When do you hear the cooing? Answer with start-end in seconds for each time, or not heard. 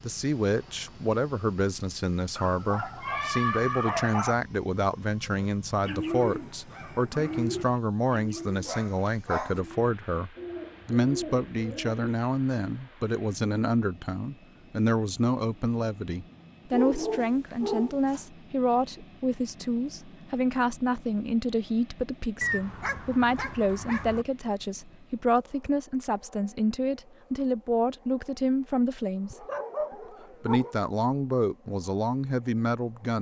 5.2-12.0.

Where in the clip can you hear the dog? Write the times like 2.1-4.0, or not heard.
2.4-4.3, 8.7-9.6, 16.7-18.2, 22.4-24.2, 29.3-30.8.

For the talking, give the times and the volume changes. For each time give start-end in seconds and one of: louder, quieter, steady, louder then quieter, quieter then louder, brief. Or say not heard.
0.0-29.4 steady
30.4-33.1 brief.